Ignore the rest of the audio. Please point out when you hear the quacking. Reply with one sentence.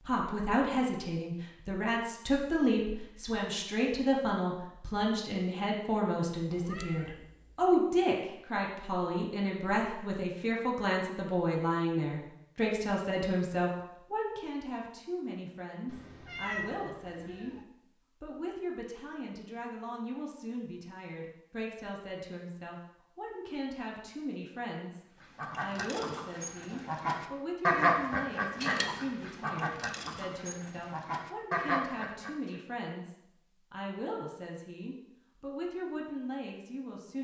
You can hear the quacking from 25.2 to 32.5 s.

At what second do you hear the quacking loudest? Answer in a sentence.
The volume of the quacking peaks at 28 seconds.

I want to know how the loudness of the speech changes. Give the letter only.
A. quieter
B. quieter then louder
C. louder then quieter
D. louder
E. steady
A.